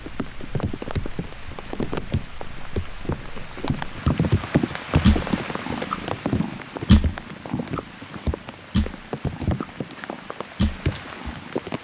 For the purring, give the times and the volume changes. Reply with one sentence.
The purring can be heard from 0.0 to 11.6 s, getting louder then quieter.